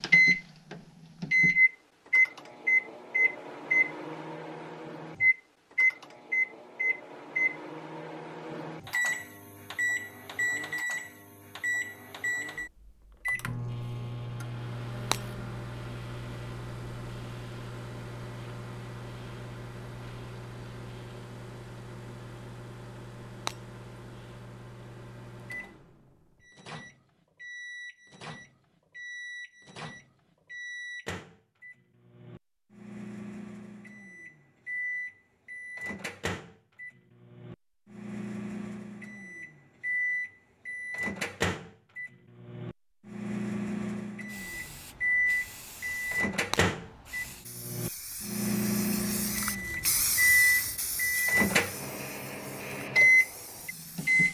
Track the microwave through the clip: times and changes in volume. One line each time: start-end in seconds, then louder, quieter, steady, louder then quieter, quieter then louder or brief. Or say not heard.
0.0-54.2 quieter then louder.